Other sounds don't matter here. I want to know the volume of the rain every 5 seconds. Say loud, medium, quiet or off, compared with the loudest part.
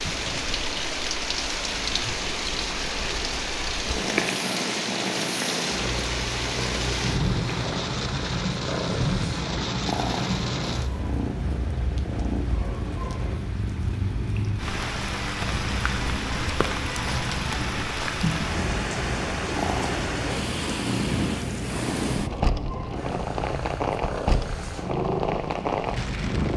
loud, loud, medium, loud, loud, loud.